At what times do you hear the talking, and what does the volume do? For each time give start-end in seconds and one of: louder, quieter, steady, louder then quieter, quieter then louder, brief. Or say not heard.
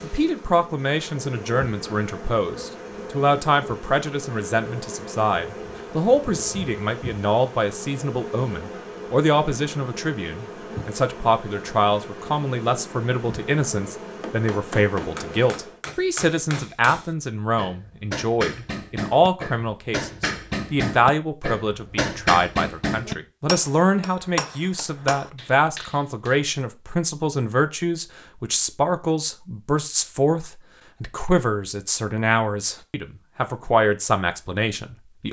0.0-35.2 steady.